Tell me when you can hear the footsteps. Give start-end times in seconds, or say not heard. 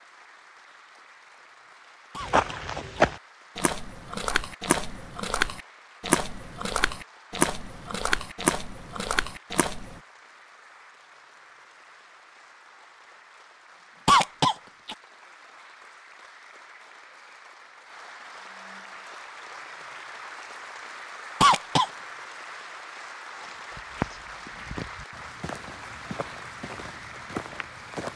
2.2-10.0, 23.4-28.1.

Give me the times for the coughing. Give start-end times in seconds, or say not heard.
2.1-3.1, 14.1-14.9, 21.4-21.9.